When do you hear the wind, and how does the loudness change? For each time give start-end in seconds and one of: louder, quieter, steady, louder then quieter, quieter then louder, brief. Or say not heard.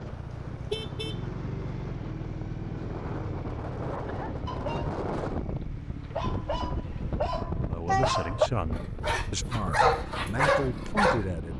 0.0-11.5 louder then quieter.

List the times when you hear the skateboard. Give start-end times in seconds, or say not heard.
not heard.